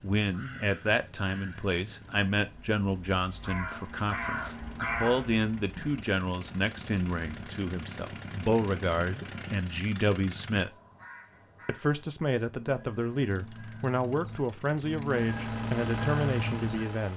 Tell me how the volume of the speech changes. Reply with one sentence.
The volume of the speech stays about the same.